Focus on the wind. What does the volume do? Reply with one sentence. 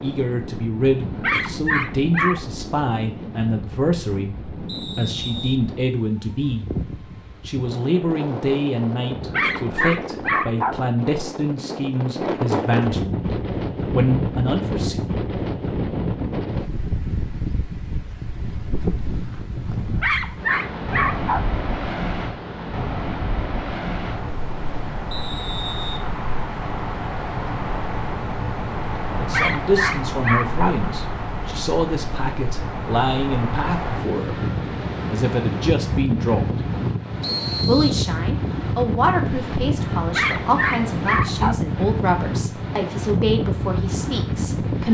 The volume of the wind goes up.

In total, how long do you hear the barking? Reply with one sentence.
You can hear the barking for 8 seconds altogether.